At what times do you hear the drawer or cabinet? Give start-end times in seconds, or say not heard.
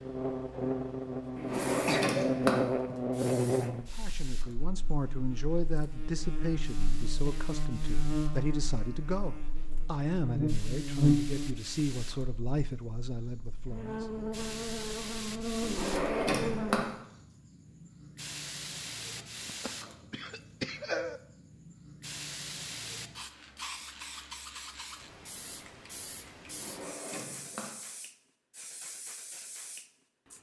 1.4-2.7, 15.6-16.9, 26.4-27.8.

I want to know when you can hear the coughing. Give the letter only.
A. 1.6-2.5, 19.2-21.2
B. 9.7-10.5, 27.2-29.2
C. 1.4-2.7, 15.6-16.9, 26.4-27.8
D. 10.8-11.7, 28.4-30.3
A.